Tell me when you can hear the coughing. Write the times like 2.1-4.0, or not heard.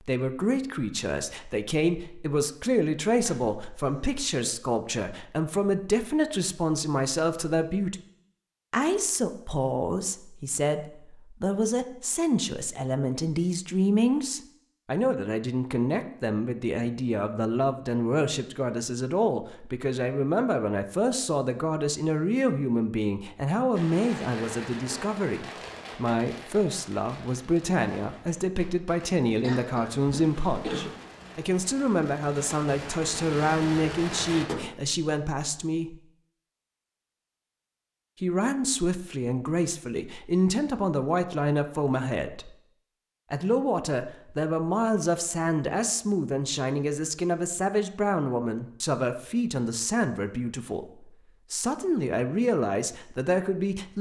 3.2-4.5, 29.4-30.9.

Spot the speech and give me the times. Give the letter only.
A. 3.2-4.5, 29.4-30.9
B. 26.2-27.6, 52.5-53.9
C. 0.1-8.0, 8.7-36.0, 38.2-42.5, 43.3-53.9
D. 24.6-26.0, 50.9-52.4
C.